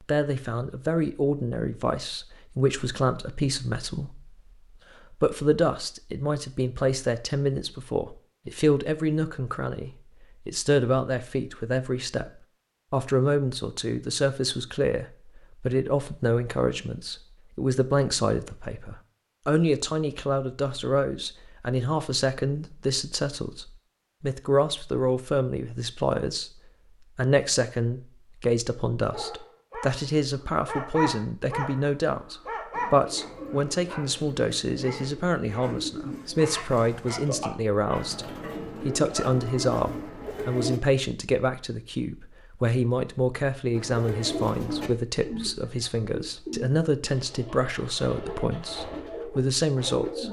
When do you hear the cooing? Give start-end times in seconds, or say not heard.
32.7-40.8, 43.7-50.2.